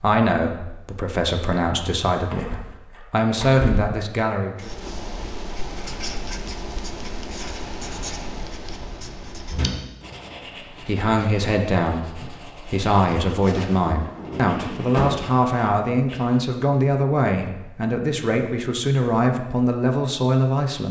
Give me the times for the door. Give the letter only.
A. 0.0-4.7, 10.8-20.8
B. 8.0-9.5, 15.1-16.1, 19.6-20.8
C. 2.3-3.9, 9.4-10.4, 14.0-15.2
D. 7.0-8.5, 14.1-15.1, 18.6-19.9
C.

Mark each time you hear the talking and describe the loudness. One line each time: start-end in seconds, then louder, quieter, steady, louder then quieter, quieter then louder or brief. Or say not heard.
0.0-4.7 louder
10.8-20.8 steady.